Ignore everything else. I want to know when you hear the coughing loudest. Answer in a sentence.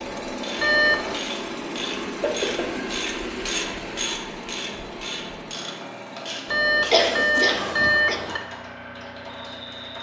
The loudest moment of the coughing is at 7 seconds.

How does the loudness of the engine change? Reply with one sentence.
The loudness of the engine goes down.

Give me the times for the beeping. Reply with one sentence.
You can hear the beeping from 0.6 to 1.2 s and from 6.5 to 8.4 s.